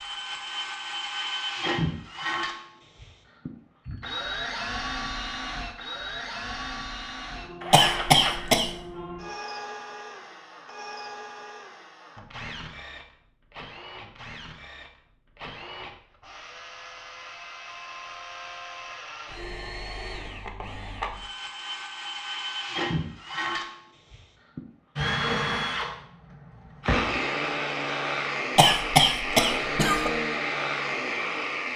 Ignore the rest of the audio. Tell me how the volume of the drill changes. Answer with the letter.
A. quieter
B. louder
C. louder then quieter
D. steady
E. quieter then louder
E.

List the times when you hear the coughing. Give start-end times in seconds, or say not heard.
7.7-8.7, 28.6-30.1.